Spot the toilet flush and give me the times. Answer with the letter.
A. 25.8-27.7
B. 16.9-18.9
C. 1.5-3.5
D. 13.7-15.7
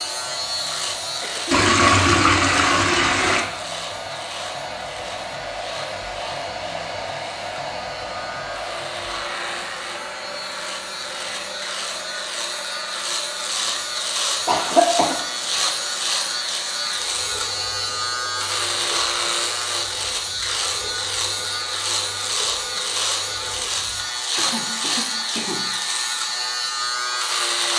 C.